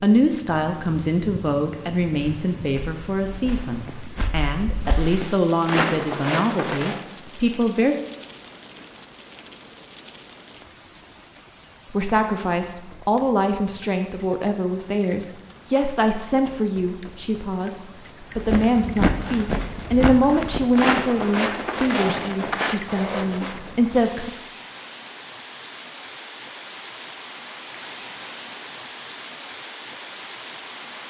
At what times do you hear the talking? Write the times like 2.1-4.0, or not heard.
0.0-8.0, 11.9-24.3.